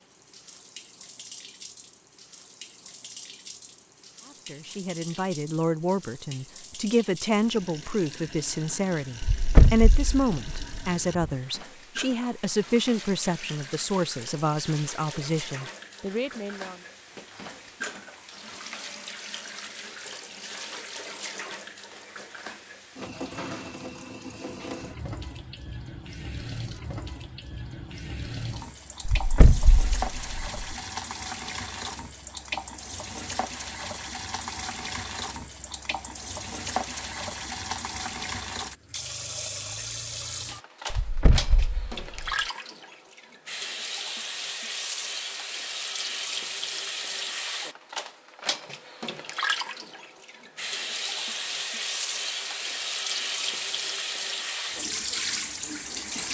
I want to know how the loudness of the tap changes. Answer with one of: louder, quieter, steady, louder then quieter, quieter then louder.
louder.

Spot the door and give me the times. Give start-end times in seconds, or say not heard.
9.2-11.3, 29.1-30.8, 40.9-42.4.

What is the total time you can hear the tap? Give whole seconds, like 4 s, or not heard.
56 s.